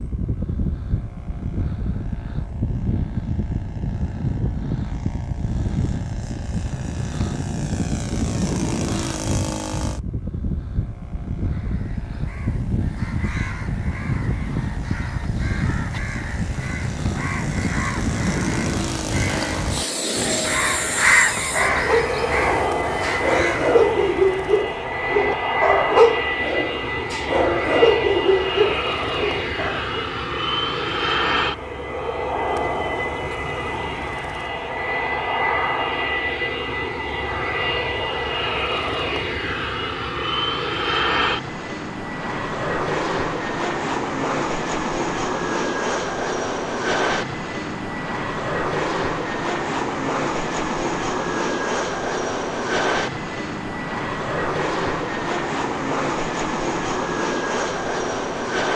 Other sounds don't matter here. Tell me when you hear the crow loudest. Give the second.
21 s.